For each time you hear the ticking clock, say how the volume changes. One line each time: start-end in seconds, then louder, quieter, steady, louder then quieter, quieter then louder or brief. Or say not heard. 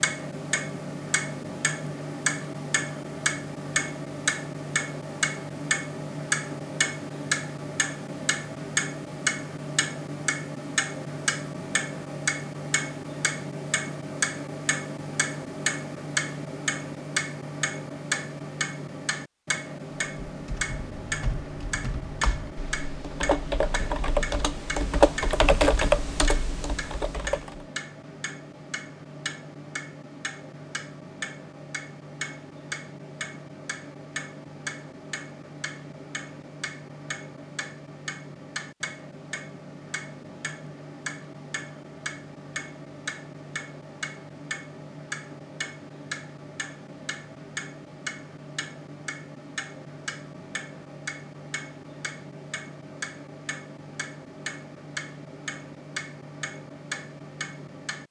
0.0-58.0 quieter.